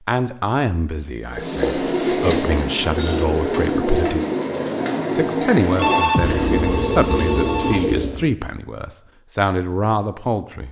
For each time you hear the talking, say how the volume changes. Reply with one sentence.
The talking can be heard from 0.1 to 4.2 s, getting quieter then louder; and from 5.2 to 10.6 s, getting quieter then louder.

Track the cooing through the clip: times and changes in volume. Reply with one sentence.
The cooing can be heard from 1.2 to 8.2 s, at a steady volume.